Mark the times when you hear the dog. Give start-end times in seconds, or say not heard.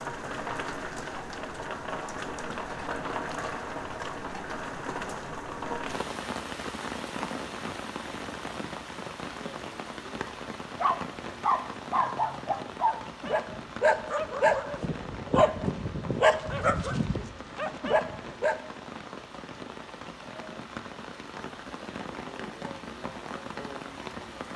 10.8-18.6.